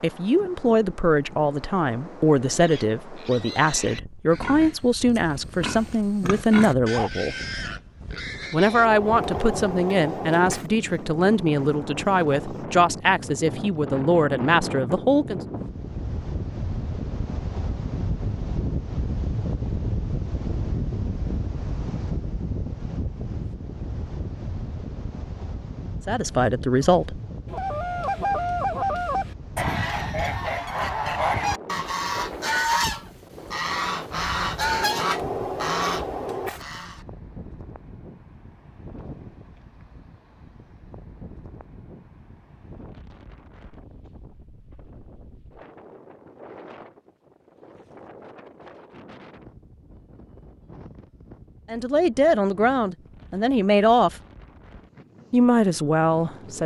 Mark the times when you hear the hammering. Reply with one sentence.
You can hear the hammering from 8.7 to 10.7 s and from 34.6 to 36.6 s.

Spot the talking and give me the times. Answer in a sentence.
You can hear the talking from 0.0 to 7.3 s, from 8.5 to 15.4 s, from 26.1 to 27.2 s, from 51.7 to 54.1 s and from 55.3 to 56.6 s.